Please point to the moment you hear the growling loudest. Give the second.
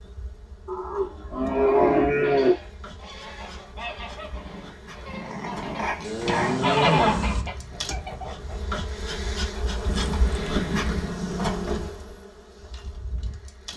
6 s.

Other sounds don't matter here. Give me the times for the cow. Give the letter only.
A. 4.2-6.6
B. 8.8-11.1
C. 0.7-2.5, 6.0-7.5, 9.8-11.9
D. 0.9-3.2
C.